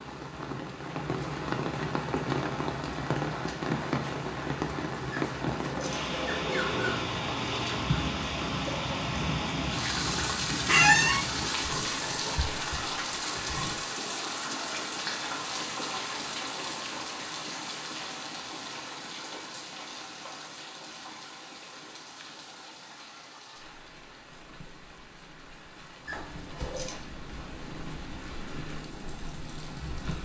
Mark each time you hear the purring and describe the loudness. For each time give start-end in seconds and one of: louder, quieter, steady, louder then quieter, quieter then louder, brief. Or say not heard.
6.7-13.8 quieter
24.2-30.2 louder.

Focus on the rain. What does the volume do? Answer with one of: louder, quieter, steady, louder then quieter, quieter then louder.
quieter.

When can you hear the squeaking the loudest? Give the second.
11 s.